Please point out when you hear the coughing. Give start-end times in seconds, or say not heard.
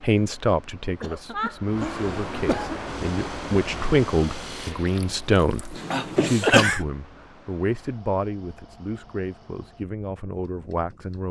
1.0-2.8, 5.9-6.8.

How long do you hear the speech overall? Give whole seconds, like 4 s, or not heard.
11 s.